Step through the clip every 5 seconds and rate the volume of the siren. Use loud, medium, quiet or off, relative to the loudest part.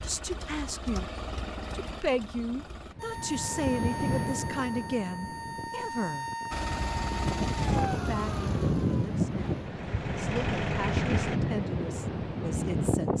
loud, loud, off.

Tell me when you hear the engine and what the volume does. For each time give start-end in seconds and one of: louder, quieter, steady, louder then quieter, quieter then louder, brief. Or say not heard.
0.0-3.0 brief
6.5-11.4 quieter then louder.